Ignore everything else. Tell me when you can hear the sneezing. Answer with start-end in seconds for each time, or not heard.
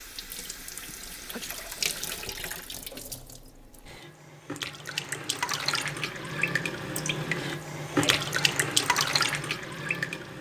0.8-1.5, 7.9-8.3.